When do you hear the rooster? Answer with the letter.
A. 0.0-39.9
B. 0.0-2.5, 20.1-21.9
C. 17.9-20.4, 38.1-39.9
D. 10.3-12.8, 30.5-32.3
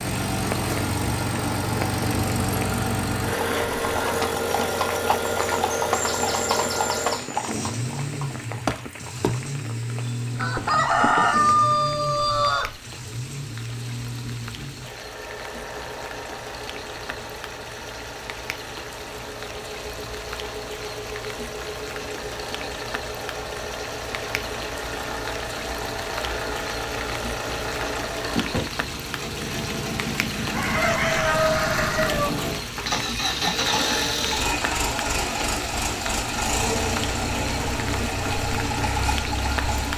D.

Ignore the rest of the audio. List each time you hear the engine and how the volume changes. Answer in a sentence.
The engine can be heard from 0.0 to 39.9 s, getting quieter then louder.